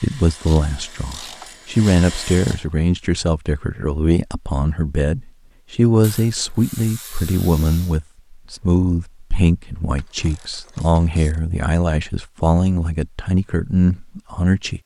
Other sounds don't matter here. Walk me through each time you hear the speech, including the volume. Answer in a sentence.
The speech can be heard from 0.0 to 14.8 s, at a steady volume.